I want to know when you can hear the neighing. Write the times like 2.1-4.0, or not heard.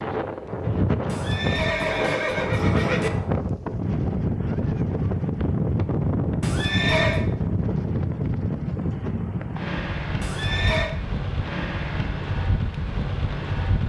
1.1-3.1, 6.4-7.2, 10.2-10.9.